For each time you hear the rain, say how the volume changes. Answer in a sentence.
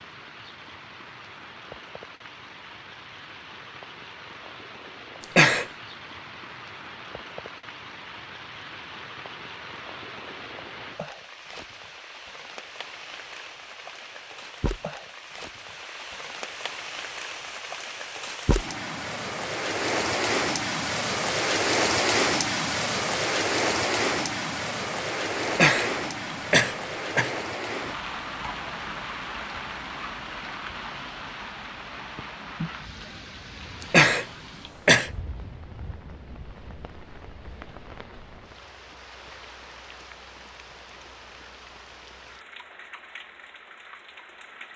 The rain can be heard from 0.0 to 44.7 s, getting louder then quieter.